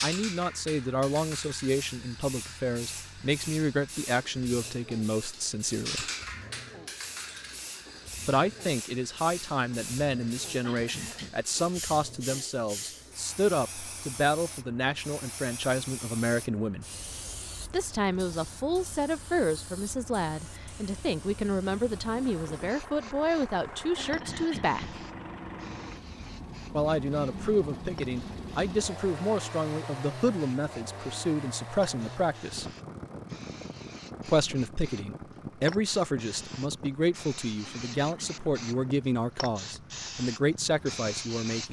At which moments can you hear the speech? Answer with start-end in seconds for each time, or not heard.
0.0-6.0, 8.2-16.9, 17.7-25.0, 26.7-32.6, 34.2-41.6.